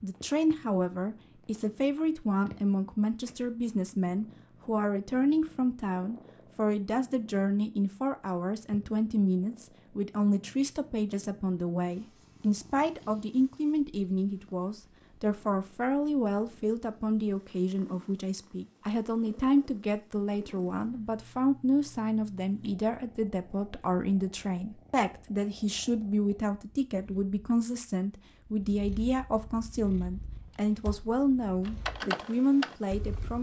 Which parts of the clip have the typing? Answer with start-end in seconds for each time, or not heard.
30.3-33.3.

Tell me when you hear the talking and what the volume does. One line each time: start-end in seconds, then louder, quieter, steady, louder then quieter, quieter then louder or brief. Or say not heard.
0.0-33.3 steady.